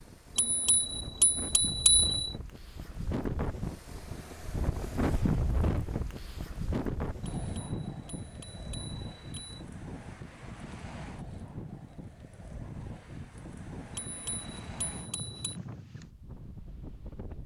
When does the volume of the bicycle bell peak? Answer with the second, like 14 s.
2 s.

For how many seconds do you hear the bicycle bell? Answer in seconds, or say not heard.
6 s.